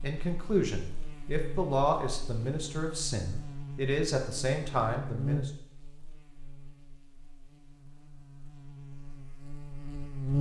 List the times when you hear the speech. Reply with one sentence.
The speech can be heard from 0.0 to 5.5 s.